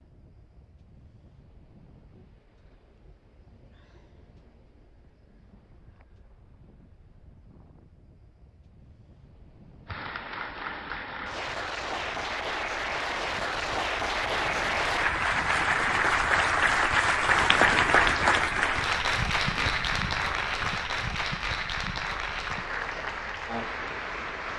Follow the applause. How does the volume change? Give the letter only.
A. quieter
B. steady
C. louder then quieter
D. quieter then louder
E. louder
C.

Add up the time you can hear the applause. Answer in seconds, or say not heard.
15 s.